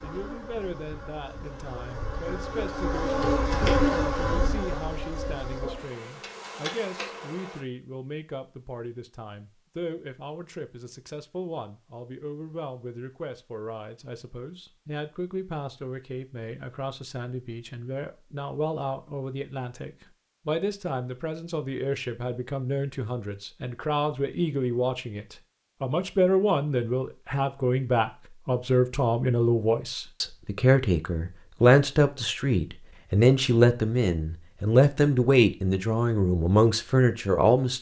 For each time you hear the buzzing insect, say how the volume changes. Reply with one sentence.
You can hear the buzzing insect from 0.0 to 7.6 s, getting louder then quieter.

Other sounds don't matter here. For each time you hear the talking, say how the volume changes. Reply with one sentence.
You can hear the talking from 0.0 to 37.7 s, getting louder.